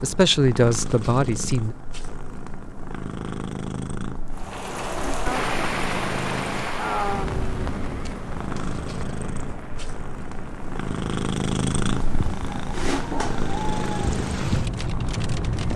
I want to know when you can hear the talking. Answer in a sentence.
The talking can be heard from 0.0 to 1.8 s.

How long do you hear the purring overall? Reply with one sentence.
The purring can be heard for 16 seconds in total.